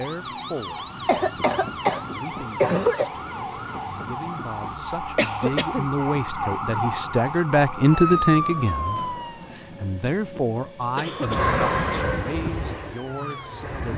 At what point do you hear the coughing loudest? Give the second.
3 s.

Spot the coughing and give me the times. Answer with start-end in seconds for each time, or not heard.
1.1-2.0, 2.6-3.1, 5.2-5.9, 10.9-12.1.